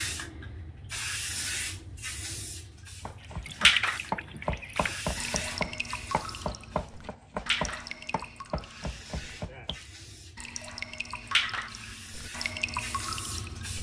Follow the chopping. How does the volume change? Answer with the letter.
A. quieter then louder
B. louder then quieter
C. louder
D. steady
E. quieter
E.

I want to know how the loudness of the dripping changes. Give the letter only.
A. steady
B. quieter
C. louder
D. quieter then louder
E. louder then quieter
D.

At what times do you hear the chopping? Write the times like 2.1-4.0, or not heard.
3.0-9.8.